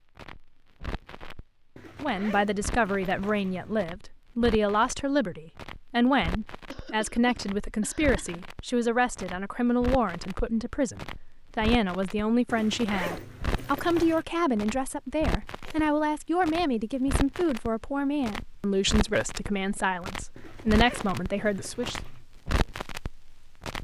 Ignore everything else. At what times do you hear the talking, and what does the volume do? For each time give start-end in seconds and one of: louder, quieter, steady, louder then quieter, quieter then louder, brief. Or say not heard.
2.0-22.0 steady.